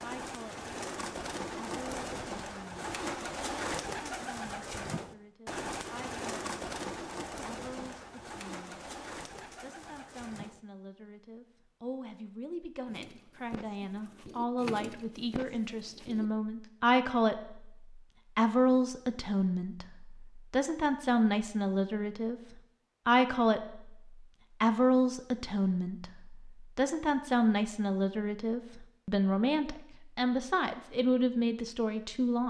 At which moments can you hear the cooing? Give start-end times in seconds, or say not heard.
0.0-10.6, 12.8-16.3.